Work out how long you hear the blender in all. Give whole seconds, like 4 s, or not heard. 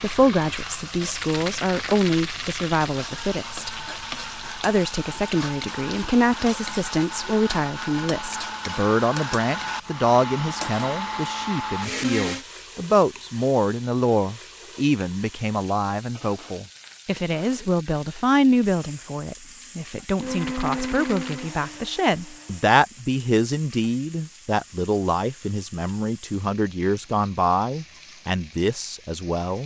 12 s.